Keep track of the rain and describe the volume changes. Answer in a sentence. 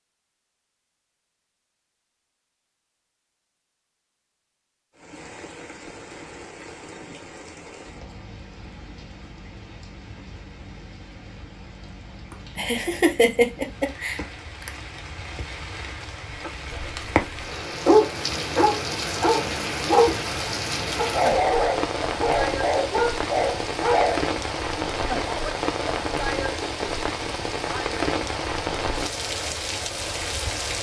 The volume of the rain goes up.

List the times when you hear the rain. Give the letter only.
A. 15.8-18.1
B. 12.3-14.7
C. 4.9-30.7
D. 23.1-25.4
C.